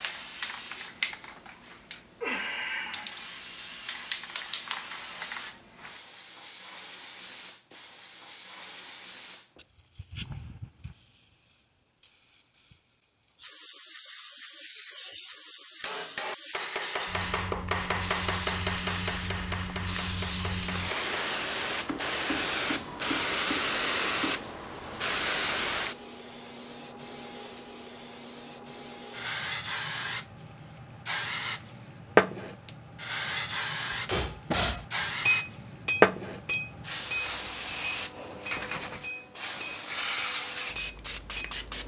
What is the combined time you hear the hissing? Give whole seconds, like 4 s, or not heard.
42 s.